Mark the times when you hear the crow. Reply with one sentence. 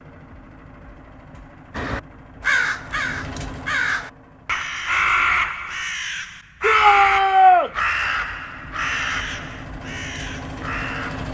You can hear the crow from 1.7 to 11.2 s.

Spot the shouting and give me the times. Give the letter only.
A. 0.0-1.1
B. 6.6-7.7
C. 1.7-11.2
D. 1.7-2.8
B.